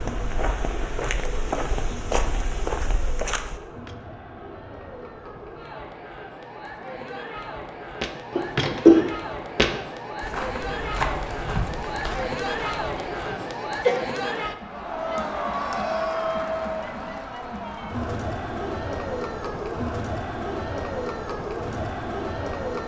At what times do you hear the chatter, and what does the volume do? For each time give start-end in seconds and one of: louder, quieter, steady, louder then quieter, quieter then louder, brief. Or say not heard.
0.0-22.8 louder.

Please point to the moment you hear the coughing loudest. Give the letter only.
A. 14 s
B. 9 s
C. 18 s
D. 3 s
B.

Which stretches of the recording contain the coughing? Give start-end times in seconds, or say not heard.
8.3-9.1, 13.2-14.0.